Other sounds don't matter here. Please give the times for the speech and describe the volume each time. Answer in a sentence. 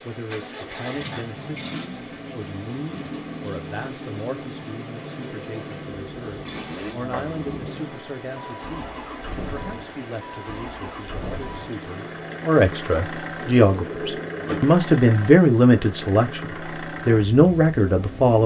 The speech can be heard from 0.0 to 18.4 s, getting louder.